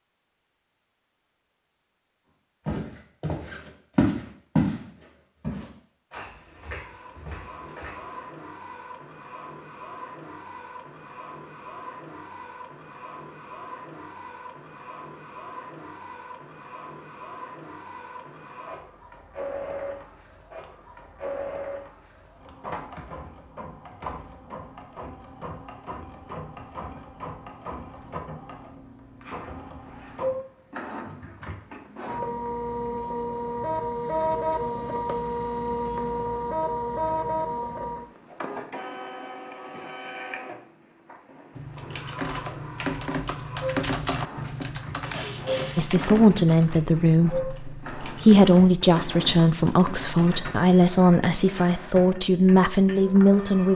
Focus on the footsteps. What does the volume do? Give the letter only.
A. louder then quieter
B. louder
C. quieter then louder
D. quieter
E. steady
A.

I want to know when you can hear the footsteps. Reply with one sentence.
You can hear the footsteps from 2.6 to 8.2 s.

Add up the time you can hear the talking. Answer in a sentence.
The talking can be heard for 8 seconds in total.